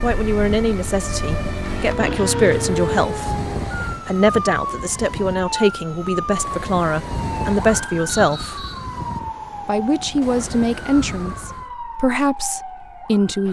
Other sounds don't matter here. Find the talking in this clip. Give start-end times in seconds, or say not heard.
0.0-3.5, 4.0-8.6, 9.7-13.4.